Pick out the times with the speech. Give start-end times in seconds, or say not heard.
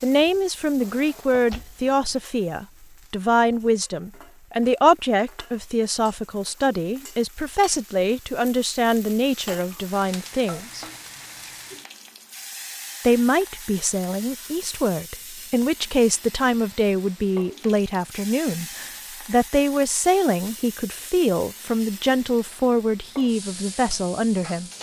0.0-10.8, 13.0-24.7.